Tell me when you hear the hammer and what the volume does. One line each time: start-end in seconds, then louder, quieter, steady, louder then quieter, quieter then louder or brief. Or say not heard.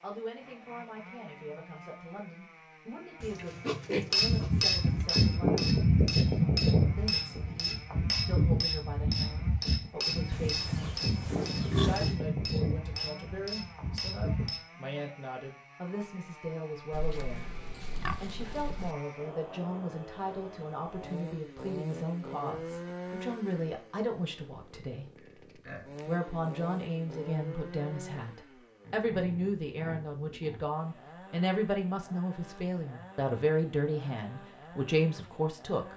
4.1-14.6 quieter.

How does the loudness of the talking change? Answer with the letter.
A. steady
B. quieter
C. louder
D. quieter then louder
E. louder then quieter
C.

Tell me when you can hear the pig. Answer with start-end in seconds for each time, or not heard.
3.2-5.0, 10.3-12.2, 16.9-18.9, 25.1-26.1, 28.8-30.7.